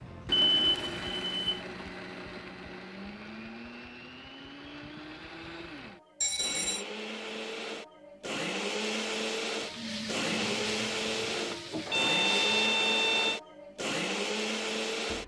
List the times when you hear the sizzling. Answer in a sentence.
You can hear the sizzling from 9.6 to 12.7 s.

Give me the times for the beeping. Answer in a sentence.
You can hear the beeping from 0.5 to 1.6 s, from 6.2 to 6.8 s and from 11.8 to 13.4 s.